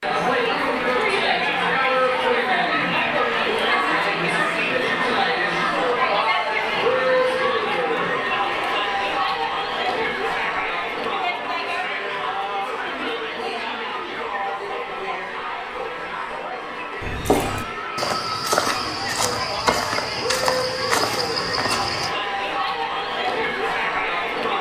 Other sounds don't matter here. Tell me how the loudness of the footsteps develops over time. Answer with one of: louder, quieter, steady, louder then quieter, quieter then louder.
steady.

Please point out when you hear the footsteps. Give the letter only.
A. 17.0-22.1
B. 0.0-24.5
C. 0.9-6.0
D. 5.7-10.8
A.